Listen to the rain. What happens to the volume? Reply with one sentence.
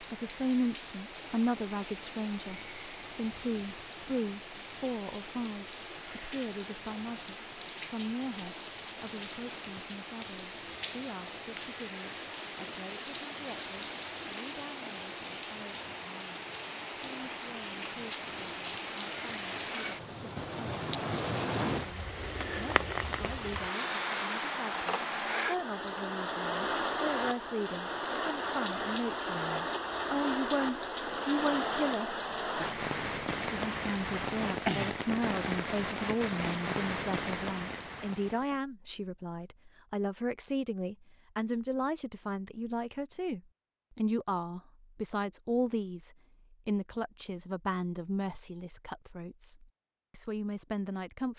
The loudness of the rain goes up.